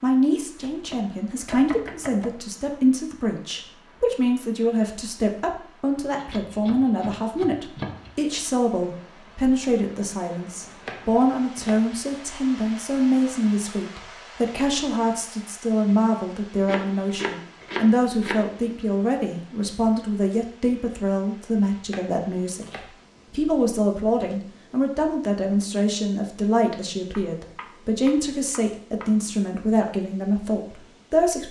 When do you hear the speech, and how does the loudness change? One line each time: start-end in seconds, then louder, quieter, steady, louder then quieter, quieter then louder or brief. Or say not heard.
0.0-31.4 steady.